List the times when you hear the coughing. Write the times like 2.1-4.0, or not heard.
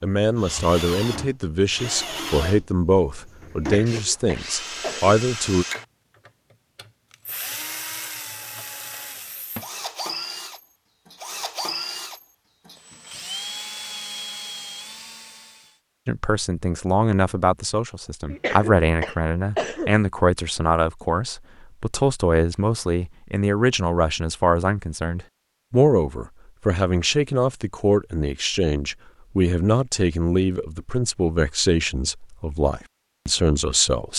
3.5-5.2, 18.2-19.9.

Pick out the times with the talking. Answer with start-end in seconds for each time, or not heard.
0.0-5.7, 16.1-34.1.